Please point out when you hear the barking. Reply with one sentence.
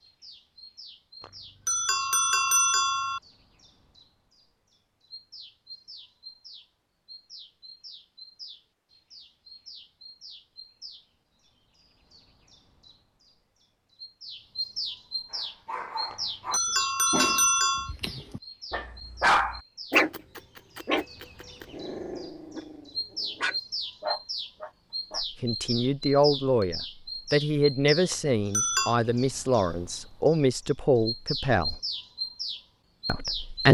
You can hear the barking from 15.3 to 25.2 s.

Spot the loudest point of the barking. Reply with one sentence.
The volume of the barking peaks at 19 seconds.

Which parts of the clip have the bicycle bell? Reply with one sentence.
The bicycle bell can be heard from 1.2 to 3.2 s, from 16.1 to 17.9 s and from 28.1 to 28.9 s.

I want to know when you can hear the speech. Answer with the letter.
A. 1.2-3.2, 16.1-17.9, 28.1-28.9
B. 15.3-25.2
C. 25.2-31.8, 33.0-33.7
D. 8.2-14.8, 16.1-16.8
C.